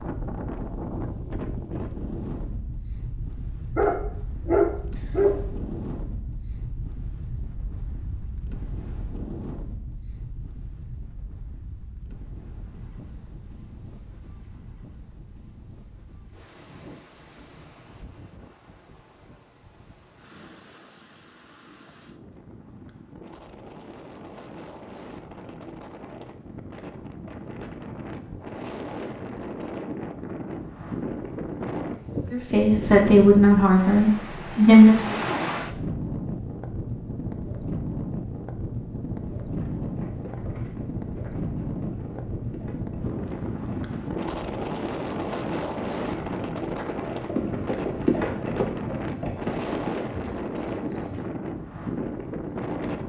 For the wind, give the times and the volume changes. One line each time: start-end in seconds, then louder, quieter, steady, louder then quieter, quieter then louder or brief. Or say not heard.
0.0-53.0 quieter then louder.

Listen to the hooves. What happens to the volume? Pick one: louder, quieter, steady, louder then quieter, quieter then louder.
louder then quieter.